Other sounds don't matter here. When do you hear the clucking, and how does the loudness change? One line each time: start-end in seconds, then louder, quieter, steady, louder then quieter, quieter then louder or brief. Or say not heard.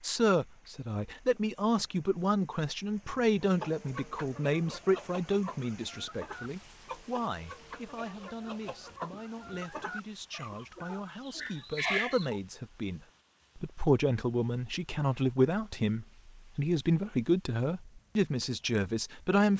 3.4-12.4 louder.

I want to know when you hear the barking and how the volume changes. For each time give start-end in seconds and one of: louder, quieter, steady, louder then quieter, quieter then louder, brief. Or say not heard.
not heard.